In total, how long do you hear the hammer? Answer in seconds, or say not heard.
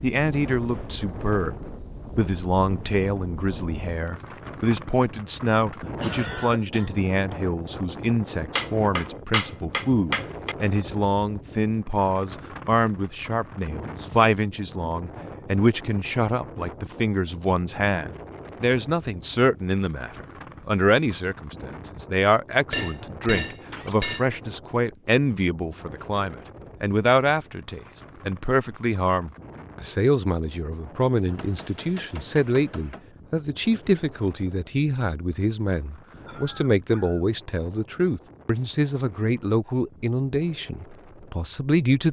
5 s.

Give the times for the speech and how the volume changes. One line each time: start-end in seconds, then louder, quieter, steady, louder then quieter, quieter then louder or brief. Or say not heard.
0.0-42.0 steady.